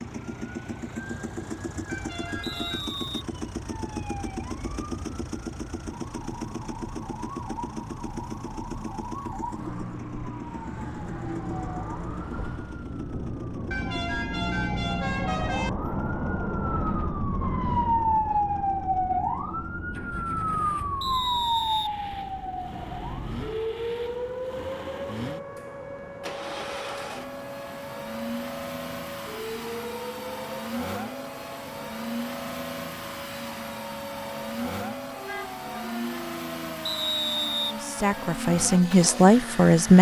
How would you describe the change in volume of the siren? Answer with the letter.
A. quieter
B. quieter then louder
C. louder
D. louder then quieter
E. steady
D.